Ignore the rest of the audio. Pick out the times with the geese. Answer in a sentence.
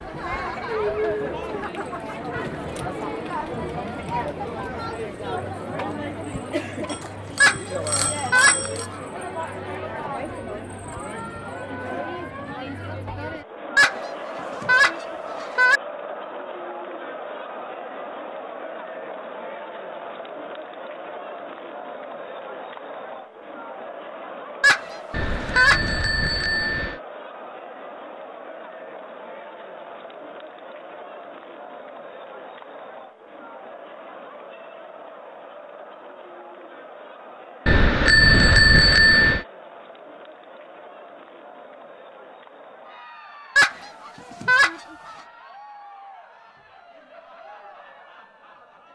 The geese can be heard from 7.4 to 8.9 s, from 13.8 to 15.8 s, from 24.6 to 25.9 s and from 43.5 to 45.1 s.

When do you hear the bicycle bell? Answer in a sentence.
You can hear the bicycle bell from 6.8 to 8.8 s, from 25.1 to 27.0 s and from 37.6 to 39.5 s.